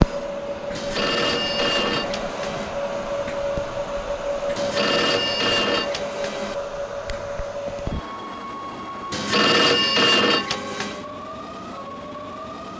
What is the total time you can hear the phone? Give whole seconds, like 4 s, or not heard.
6 s.